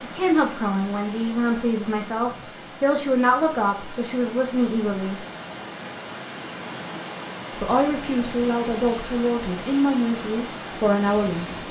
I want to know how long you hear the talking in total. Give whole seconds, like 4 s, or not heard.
9 s.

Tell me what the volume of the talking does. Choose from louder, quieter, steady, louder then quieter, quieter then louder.
steady.